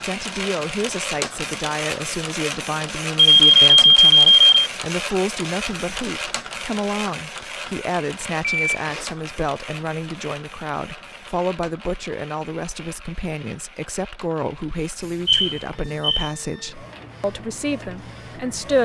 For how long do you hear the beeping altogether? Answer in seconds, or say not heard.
3 s.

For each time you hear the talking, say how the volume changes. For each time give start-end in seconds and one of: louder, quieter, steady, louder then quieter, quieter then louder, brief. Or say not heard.
0.0-18.8 steady.